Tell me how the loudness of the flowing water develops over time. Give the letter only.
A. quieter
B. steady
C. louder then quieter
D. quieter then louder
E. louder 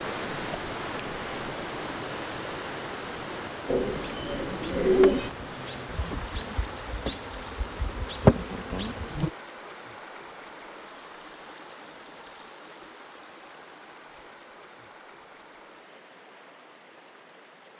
A.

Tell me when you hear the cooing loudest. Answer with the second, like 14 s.
5 s.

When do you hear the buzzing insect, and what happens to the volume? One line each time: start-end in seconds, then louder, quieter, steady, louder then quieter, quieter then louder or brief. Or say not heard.
3.9-9.3 quieter then louder.